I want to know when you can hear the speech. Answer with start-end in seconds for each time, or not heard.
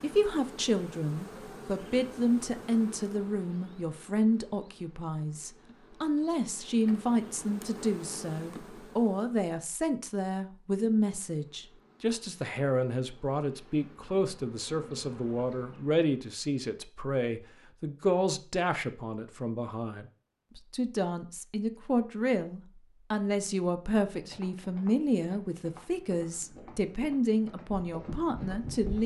0.0-29.0.